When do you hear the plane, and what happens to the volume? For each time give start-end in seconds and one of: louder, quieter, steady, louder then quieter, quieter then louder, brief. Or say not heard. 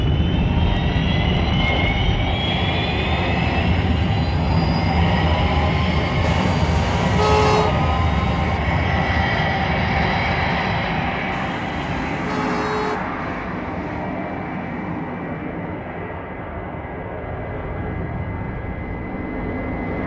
0.0-20.0 quieter.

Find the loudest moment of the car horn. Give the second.
7 s.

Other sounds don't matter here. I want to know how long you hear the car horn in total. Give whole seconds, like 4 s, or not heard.
3 s.